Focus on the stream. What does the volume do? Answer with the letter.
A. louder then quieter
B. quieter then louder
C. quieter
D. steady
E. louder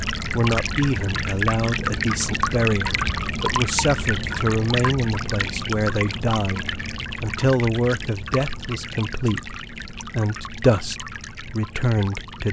C.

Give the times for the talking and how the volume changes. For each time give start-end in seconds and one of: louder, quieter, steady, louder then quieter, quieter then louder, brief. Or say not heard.
0.3-12.4 steady.